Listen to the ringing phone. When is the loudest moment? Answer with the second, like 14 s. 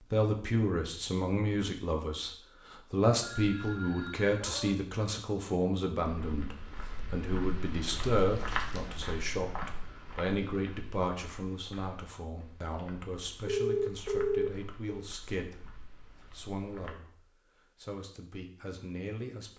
14 s.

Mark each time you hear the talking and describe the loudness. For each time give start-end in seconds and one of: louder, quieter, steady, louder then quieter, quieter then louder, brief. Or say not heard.
0.0-19.5 quieter.